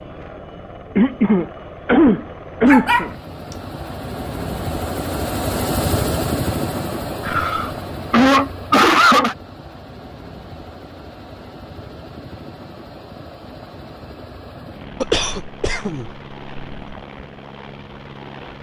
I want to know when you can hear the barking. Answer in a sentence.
The barking can be heard from 2.6 to 3.5 s.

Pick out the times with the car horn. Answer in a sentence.
You can't hear the car horn here.